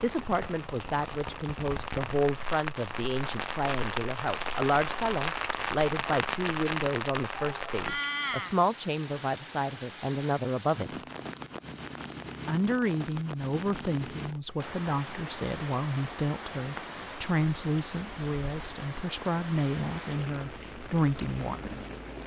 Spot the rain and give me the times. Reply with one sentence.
The rain can be heard from 0.0 to 22.2 s.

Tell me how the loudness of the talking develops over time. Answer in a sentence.
The loudness of the talking stays about the same.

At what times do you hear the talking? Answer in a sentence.
The talking can be heard from 0.0 to 11.0 s and from 12.4 to 21.9 s.